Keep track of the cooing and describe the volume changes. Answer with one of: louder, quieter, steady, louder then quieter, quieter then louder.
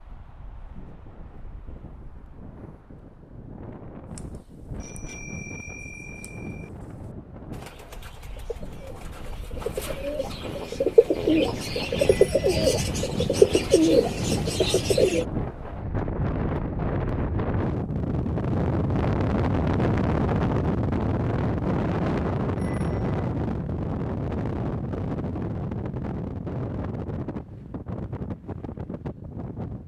louder.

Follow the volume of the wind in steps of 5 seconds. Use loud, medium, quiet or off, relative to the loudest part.
quiet, quiet, medium, loud, loud, medium.